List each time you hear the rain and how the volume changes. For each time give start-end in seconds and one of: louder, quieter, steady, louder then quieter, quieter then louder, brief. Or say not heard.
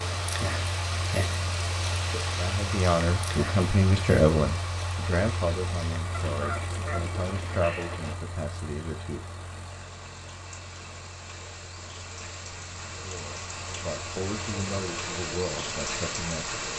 0.0-16.7 quieter then louder.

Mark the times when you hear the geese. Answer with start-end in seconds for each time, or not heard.
6.1-8.2.